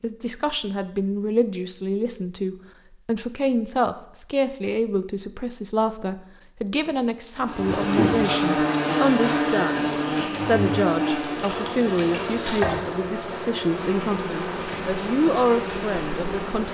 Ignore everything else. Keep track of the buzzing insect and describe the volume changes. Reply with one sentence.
The loudness of the buzzing insect goes down.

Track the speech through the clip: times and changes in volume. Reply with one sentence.
The speech can be heard from 0.0 to 16.6 s, at a steady volume.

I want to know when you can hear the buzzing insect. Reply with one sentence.
You can hear the buzzing insect from 7.4 to 16.6 s.